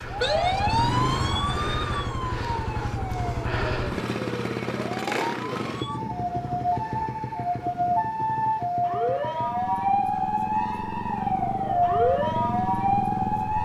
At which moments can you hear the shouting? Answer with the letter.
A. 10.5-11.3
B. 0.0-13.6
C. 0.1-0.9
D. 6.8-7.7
C.